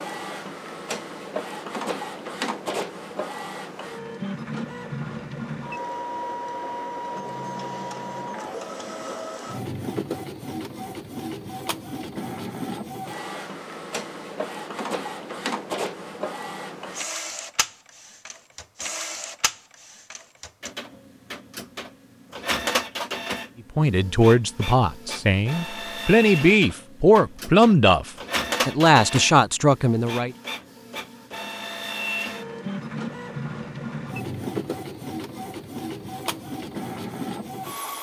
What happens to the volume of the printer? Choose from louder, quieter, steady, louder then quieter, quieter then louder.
steady.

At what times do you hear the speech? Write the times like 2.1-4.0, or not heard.
23.8-30.4.